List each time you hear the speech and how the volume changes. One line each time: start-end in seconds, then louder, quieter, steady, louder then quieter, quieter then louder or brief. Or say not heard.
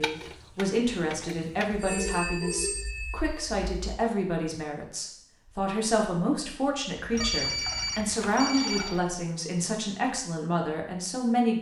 0.0-11.5 steady.